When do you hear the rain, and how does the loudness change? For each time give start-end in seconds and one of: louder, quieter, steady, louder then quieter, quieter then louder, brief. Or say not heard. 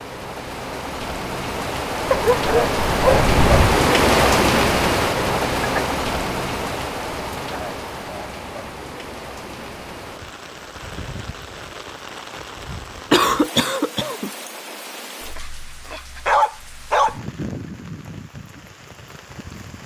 0.0-19.8 quieter.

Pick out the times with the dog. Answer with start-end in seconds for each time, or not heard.
2.1-3.9, 15.3-17.1.